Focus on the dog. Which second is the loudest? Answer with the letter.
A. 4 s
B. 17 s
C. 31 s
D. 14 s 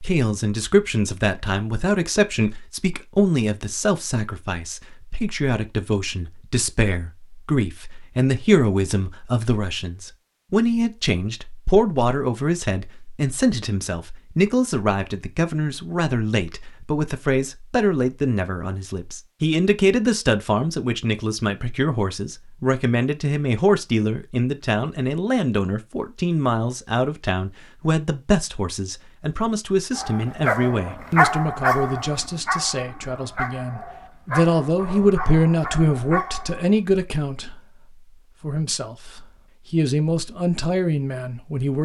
C.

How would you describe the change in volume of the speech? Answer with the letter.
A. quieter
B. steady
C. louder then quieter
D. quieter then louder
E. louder
B.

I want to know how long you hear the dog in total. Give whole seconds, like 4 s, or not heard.
7 s.